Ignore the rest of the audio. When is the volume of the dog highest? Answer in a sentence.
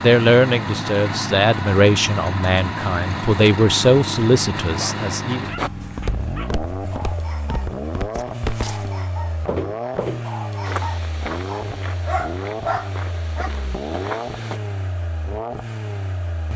The loudest moment of the dog is at 13 seconds.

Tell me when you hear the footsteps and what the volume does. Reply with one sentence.
You can hear the footsteps from 5.5 to 14.6 s, getting louder then quieter.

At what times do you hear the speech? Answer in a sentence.
You can hear the speech from 0.0 to 5.5 s.